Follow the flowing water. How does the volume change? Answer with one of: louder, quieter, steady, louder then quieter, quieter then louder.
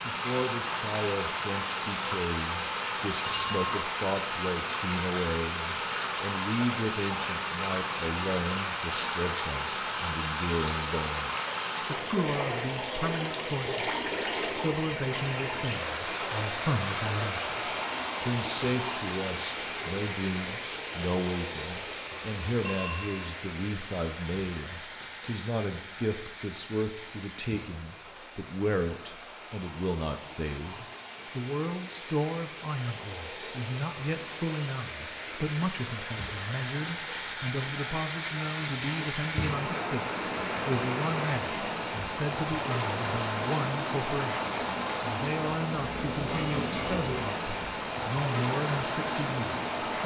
quieter then louder.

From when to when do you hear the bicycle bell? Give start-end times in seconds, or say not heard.
3.2-3.7, 22.6-23.3, 46.2-47.0.